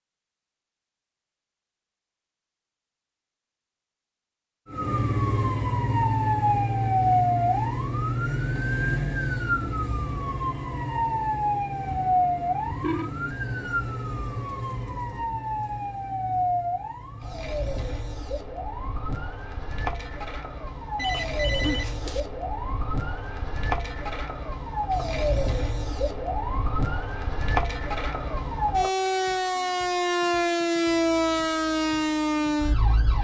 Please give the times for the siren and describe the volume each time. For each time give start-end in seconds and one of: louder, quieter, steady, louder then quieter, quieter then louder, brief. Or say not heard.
4.7-33.1 quieter then louder.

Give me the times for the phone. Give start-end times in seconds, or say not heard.
11.8-13.1, 20.9-22.2.